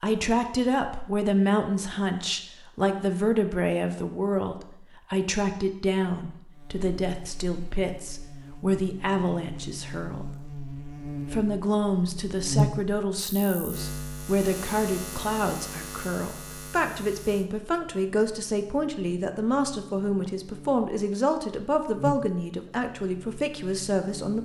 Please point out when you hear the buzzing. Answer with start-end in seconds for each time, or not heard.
6.5-24.4.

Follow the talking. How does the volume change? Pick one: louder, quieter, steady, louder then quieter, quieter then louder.
steady.